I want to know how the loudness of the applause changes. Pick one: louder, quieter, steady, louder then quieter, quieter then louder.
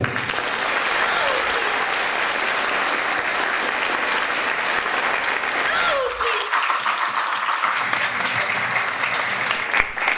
steady.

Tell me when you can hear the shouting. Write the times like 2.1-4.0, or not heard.
0.9-1.6, 5.6-6.5.